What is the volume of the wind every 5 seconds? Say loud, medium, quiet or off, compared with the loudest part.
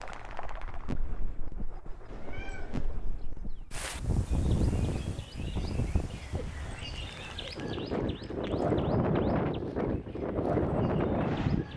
medium, loud, loud.